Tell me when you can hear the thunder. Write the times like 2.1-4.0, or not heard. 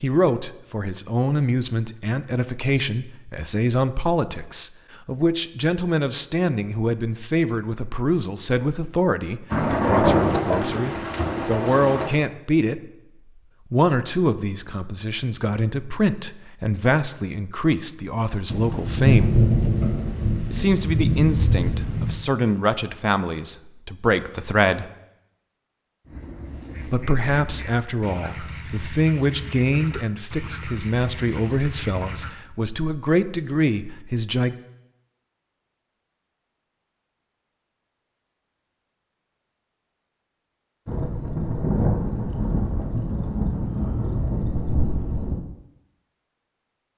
9.5-12.1, 18.4-22.1, 40.9-45.4.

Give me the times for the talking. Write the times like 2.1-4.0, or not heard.
0.0-12.8, 13.7-19.4, 20.5-24.9, 26.9-34.5.